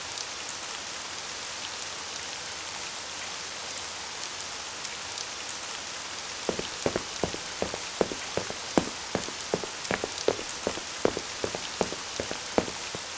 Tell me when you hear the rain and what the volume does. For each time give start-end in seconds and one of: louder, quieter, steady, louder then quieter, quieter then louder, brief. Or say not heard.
0.0-13.1 steady.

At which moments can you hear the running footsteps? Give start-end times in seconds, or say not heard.
6.5-13.0.